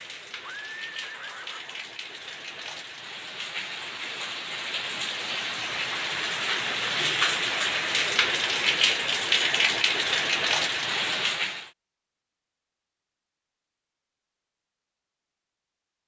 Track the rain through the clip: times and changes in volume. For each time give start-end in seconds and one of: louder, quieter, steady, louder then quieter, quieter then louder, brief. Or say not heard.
0.0-11.7 louder.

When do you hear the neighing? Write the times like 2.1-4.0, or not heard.
0.4-1.9.